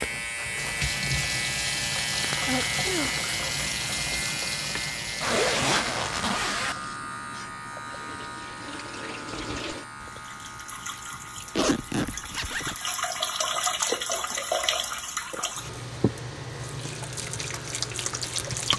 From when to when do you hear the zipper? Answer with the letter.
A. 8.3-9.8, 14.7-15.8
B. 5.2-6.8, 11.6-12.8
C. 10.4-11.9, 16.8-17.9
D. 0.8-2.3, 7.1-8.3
B.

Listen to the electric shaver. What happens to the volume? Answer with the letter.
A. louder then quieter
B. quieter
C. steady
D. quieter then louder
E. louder
B.